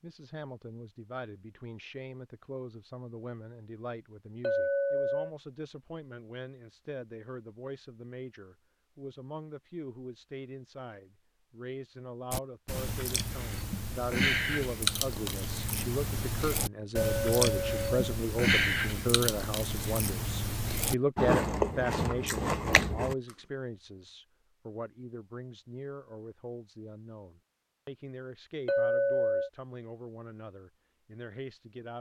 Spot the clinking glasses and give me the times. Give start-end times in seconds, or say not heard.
4.4-5.3, 16.9-18.0, 28.6-29.5.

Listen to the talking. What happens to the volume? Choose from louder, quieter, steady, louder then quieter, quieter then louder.
louder then quieter.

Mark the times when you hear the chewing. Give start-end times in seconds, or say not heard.
12.3-23.1.